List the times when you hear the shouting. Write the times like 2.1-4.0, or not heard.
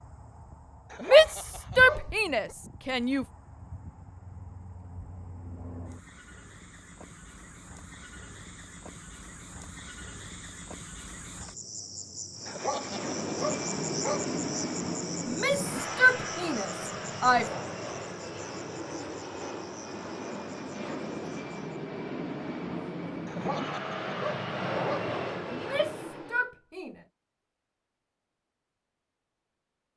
1.0-3.2, 15.2-17.5, 25.5-26.9.